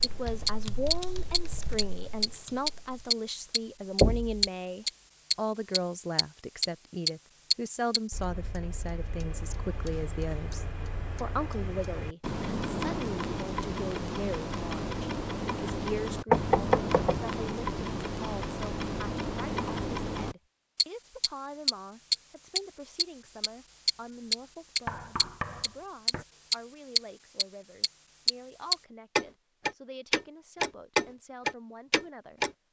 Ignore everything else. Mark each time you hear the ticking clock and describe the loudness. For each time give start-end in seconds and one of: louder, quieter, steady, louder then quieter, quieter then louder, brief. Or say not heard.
0.0-32.5 quieter then louder.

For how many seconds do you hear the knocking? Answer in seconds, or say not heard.
3 s.